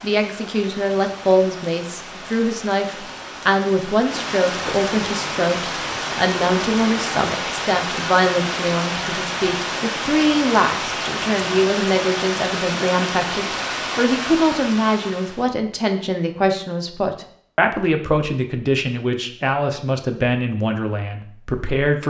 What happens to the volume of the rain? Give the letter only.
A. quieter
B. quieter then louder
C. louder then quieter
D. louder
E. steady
D.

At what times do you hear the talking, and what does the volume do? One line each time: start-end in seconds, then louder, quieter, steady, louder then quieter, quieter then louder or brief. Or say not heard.
0.0-22.0 steady.